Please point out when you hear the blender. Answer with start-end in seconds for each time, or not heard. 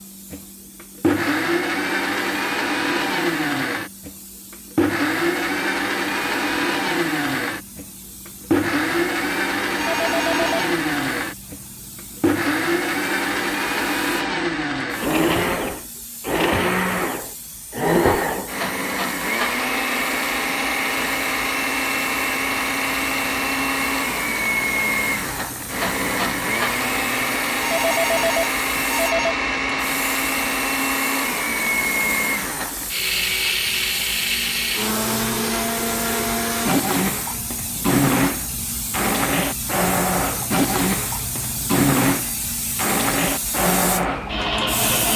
0.0-45.1.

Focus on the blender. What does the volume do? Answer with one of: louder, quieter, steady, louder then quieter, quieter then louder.
steady.